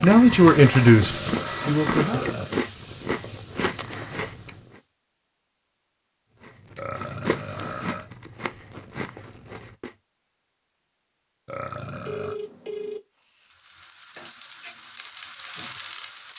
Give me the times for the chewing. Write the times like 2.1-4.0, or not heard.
0.0-4.8, 6.4-9.9.